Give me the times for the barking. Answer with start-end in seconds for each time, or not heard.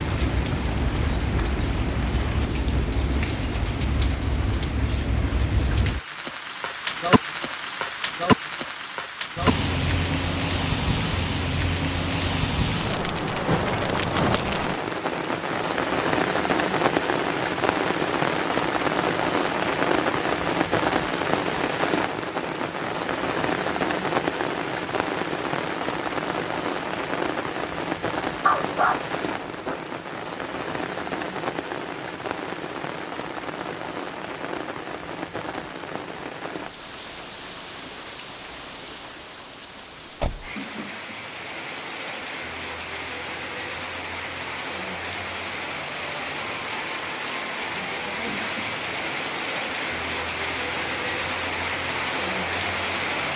28.4-29.8.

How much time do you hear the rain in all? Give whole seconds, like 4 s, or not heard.
53 s.